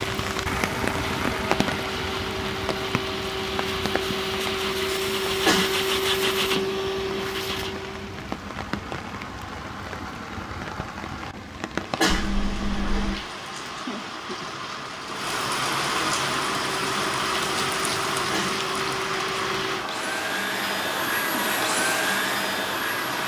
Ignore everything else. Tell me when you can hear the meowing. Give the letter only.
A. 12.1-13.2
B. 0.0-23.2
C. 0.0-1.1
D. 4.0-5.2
A.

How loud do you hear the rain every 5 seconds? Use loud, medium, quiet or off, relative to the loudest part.
loud, medium, medium, loud, medium.